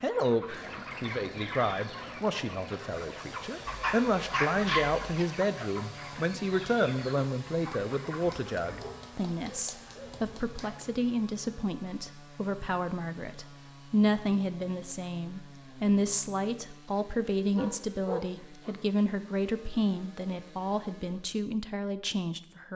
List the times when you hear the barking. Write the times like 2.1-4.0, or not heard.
3.6-5.1, 8.3-11.0, 17.6-18.8.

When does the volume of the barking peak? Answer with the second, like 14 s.
5 s.